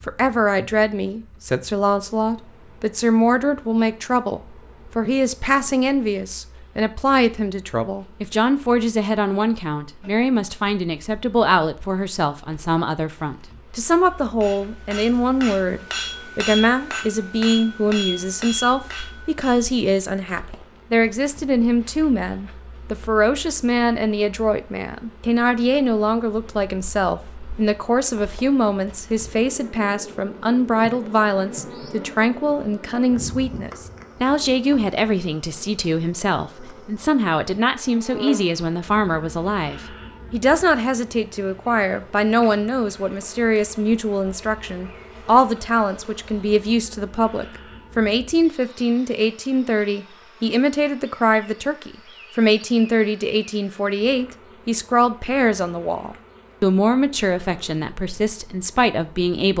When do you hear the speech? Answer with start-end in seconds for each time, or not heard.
0.1-59.5.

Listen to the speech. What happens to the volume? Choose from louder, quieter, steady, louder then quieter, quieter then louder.
steady.